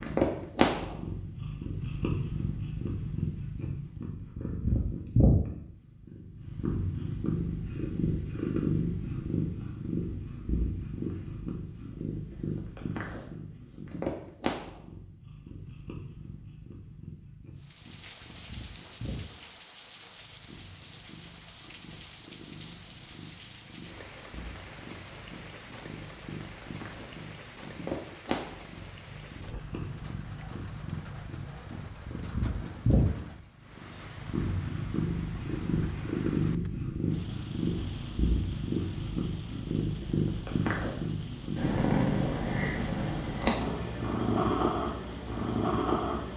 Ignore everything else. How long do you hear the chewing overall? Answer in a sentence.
The chewing can't be heard in this clip.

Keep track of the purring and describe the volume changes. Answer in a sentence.
The volume of the purring goes down, then up.